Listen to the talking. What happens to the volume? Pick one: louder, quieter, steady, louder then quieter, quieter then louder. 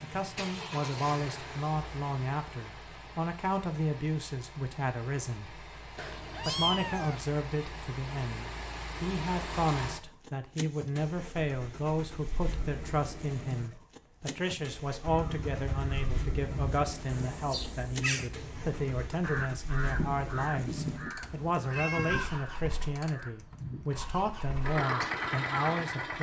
steady.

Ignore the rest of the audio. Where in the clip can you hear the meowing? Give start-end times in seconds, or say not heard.
6.0-7.2, 21.2-22.4.